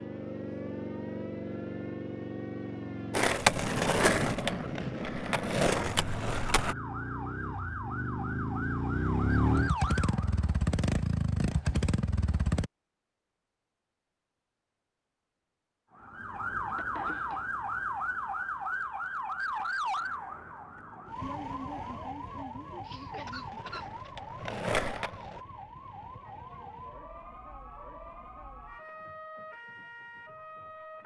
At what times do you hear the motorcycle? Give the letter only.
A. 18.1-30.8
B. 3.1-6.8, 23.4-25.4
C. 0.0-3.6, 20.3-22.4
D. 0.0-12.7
D.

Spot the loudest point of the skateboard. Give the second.
4 s.